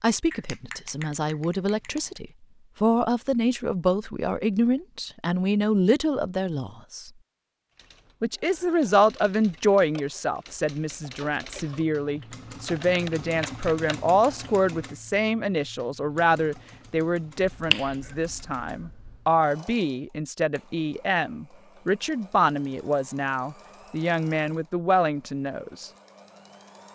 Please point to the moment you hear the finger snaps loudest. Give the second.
18 s.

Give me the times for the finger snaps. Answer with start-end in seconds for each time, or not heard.
0.3-2.2, 17.5-19.2.